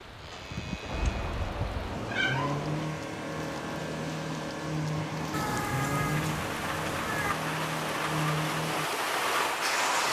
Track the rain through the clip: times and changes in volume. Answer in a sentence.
The rain can be heard from 0.0 to 10.0 s, getting louder.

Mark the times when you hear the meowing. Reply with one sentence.
You can hear the meowing from 0.8 to 2.9 s and from 5.3 to 7.3 s.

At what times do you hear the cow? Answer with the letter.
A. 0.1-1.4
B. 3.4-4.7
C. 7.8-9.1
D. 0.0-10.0
A.